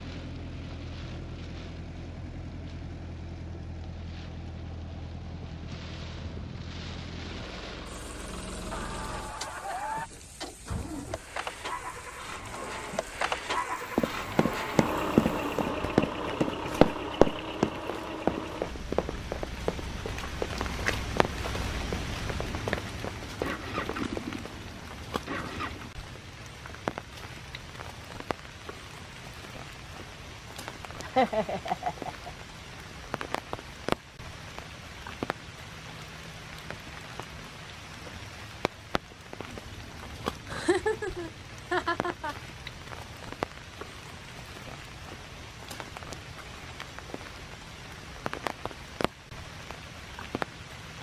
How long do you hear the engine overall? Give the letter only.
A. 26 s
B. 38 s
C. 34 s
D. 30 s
A.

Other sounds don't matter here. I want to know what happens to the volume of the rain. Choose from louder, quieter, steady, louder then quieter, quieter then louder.
louder.